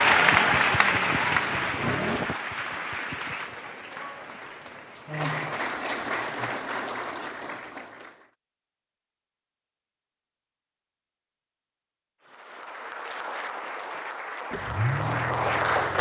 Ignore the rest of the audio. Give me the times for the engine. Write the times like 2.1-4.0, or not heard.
0.0-2.4, 14.5-15.9.